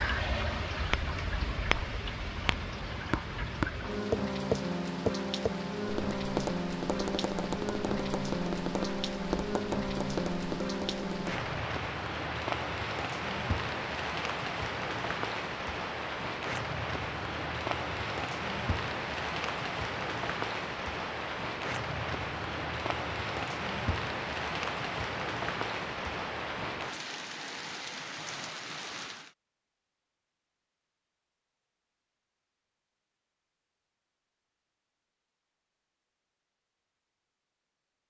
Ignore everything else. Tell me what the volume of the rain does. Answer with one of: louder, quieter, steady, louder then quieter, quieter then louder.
steady.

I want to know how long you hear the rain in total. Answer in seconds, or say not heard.
29 s.